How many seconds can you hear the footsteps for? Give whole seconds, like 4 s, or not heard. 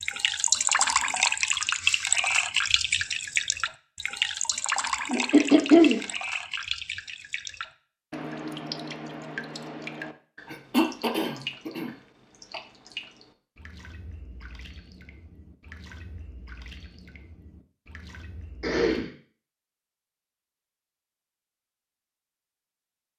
not heard.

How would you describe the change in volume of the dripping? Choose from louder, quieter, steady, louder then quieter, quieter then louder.
quieter.